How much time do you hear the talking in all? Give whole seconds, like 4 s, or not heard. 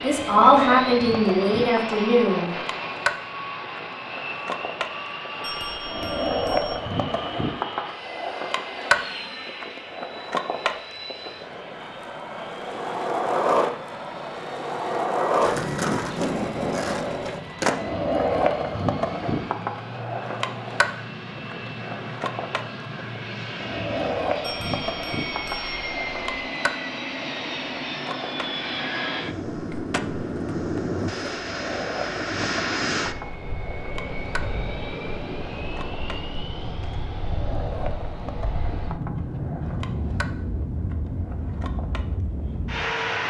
3 s.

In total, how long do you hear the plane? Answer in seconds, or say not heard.
43 s.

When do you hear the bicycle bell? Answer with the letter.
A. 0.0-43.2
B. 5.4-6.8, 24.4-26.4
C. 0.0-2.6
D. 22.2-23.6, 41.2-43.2
B.